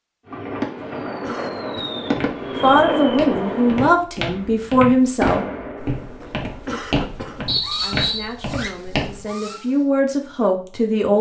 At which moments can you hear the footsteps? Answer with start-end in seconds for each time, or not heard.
2.0-9.2.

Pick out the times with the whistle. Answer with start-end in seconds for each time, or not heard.
7.5-8.3.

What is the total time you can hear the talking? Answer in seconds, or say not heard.
6 s.